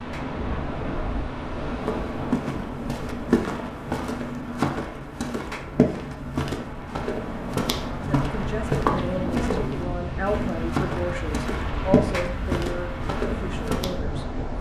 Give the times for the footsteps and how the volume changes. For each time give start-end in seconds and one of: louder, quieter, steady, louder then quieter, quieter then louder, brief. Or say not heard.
1.9-13.9 steady.